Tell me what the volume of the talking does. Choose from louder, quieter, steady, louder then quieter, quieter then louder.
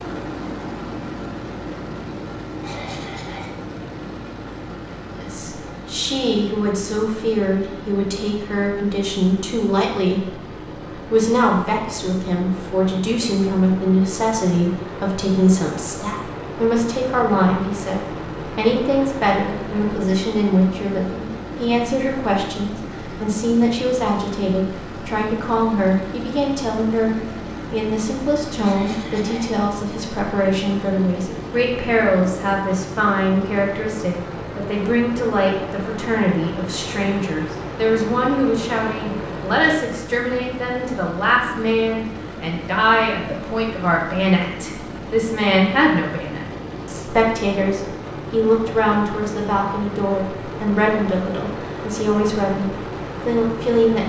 steady.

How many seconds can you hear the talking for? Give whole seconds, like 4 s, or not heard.
49 s.